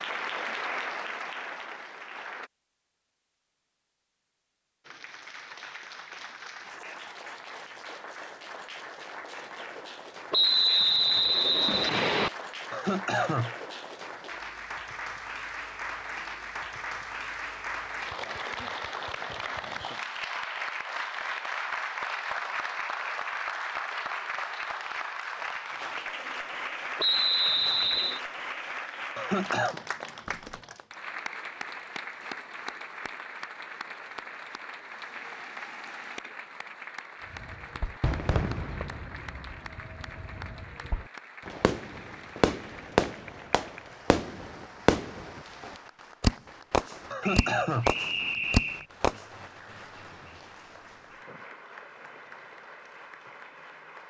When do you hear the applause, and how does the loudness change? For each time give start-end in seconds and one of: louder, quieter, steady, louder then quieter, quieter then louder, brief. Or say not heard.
0.0-2.5 brief
4.8-54.0 louder then quieter.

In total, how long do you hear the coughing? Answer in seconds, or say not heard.
2 s.